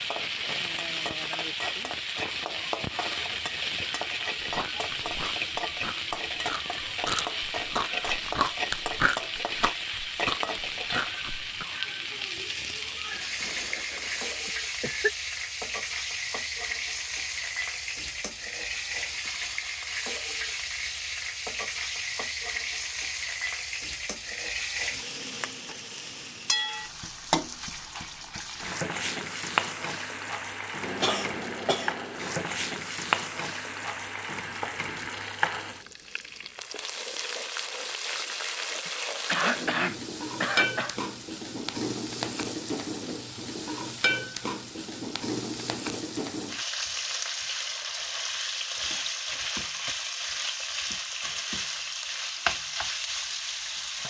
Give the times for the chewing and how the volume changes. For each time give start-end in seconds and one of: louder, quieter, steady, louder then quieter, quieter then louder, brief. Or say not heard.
4.4-11.7 louder.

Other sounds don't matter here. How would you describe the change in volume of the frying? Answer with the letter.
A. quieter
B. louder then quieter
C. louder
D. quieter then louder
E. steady
E.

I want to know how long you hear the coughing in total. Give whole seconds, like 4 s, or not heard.
6 s.